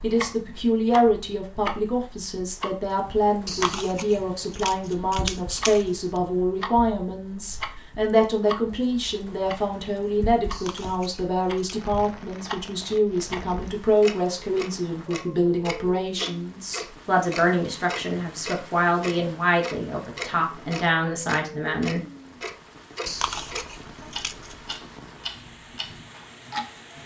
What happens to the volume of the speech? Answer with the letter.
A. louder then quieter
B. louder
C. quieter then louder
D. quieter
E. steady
E.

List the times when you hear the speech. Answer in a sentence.
You can hear the speech from 0.0 to 22.0 s.